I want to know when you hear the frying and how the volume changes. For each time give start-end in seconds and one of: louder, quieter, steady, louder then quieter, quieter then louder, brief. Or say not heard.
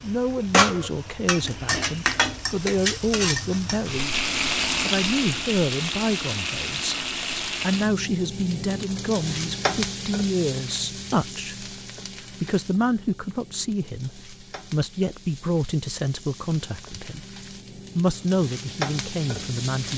0.0-19.9 quieter then louder.